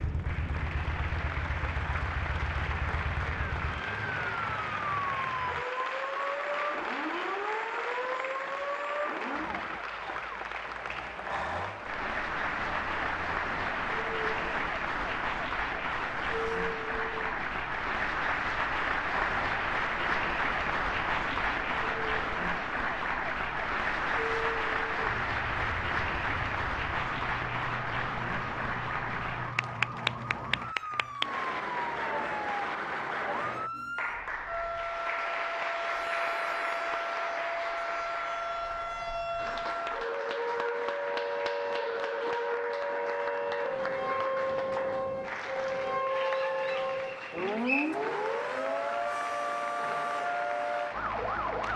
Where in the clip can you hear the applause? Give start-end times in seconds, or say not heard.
0.0-51.7.